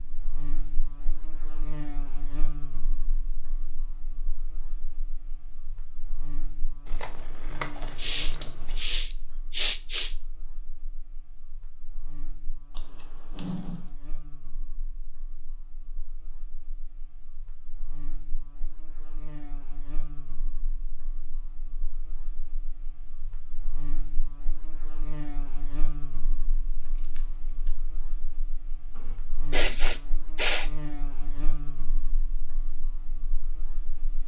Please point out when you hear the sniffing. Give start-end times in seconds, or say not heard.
8.0-10.2, 28.9-30.7.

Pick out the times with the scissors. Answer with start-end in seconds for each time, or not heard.
6.8-8.8, 12.7-13.9, 26.8-27.7.